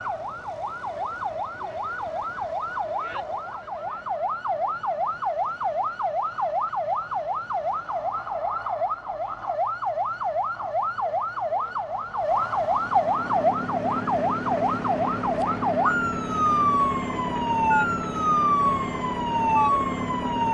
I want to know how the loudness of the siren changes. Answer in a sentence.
The loudness of the siren goes up.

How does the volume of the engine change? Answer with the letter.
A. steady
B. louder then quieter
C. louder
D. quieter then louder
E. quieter
A.